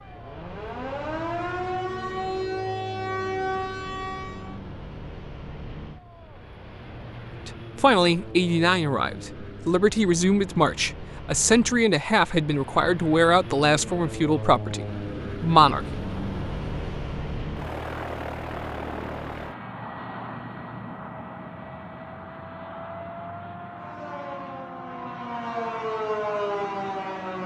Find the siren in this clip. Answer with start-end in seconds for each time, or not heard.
0.0-4.6, 23.8-27.4.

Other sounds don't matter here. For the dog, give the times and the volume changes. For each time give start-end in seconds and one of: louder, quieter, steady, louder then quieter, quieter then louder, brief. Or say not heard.
not heard.